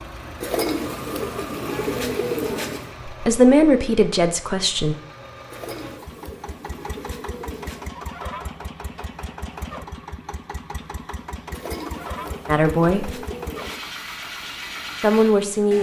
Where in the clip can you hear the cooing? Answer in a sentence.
You can hear the cooing from 0.4 to 2.9 s, from 5.5 to 7.9 s and from 11.5 to 13.8 s.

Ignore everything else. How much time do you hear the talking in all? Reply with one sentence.
You can hear the talking for 3 seconds altogether.